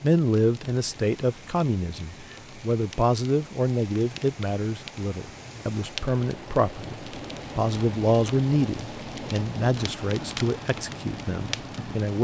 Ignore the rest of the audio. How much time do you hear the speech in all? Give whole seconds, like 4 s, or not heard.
12 s.